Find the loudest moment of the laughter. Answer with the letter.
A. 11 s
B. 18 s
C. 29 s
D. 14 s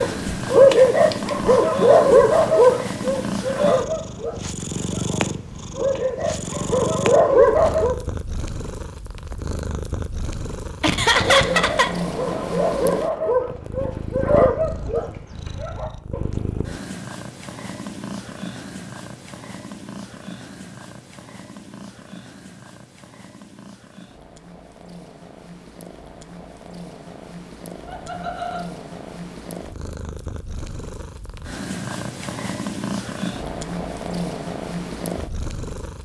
A.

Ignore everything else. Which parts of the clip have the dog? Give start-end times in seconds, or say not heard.
0.0-8.0, 11.2-16.6.